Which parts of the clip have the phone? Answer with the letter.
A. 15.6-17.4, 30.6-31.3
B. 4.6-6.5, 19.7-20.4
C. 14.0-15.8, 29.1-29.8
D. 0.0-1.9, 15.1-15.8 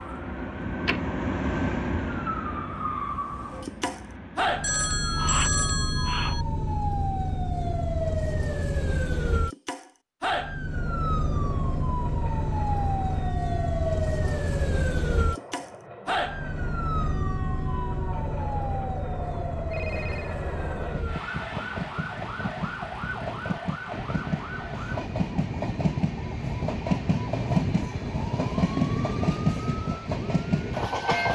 B.